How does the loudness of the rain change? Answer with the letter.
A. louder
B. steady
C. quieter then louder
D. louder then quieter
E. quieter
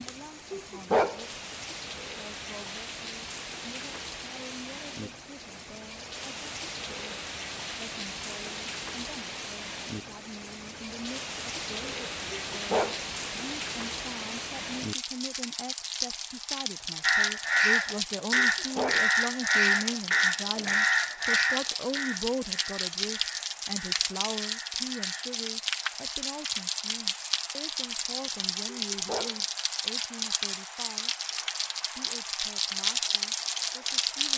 A.